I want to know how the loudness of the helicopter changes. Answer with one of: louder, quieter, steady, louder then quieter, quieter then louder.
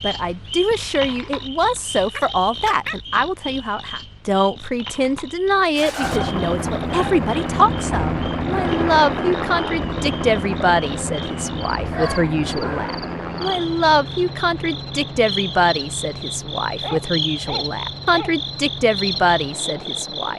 quieter.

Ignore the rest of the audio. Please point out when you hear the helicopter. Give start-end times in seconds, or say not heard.
6.0-20.3.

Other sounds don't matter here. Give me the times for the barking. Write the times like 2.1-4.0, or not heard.
2.1-3.0, 5.8-7.2, 11.9-12.9, 16.8-18.4.